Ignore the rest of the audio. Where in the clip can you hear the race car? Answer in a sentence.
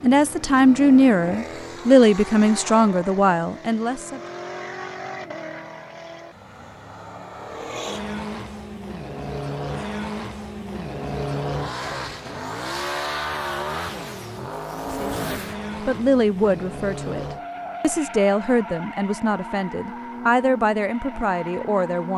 You can hear the race car from 0.0 to 22.1 s.